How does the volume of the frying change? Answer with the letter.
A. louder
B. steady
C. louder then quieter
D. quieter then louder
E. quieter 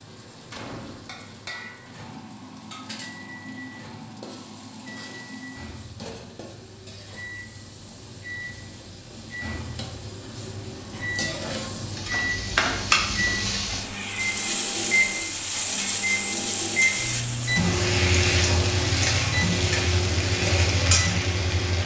A.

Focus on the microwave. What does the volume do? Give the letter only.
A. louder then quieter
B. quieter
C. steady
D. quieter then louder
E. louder
E.